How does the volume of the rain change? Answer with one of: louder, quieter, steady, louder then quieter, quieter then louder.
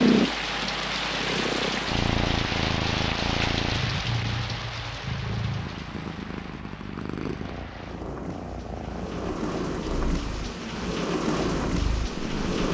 quieter then louder.